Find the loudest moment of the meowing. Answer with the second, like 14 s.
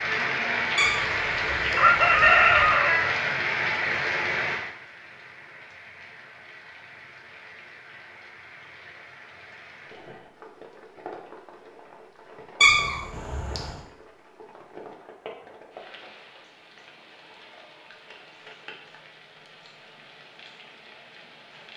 13 s.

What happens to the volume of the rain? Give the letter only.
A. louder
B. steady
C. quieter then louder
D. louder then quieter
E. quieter
E.